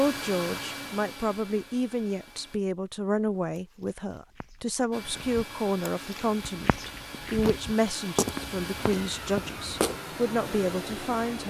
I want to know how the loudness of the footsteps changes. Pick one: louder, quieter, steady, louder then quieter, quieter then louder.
louder then quieter.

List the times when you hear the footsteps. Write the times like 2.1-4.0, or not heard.
3.5-9.9.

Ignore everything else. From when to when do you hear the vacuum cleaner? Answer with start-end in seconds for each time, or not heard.
0.0-2.6, 4.9-11.4.